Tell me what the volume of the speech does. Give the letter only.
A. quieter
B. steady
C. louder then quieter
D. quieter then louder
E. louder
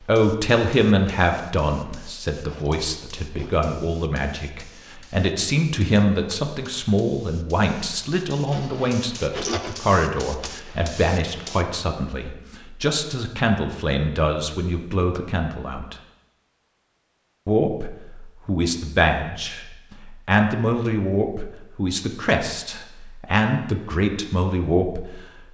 B.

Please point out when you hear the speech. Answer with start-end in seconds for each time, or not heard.
0.0-15.9, 17.4-25.1.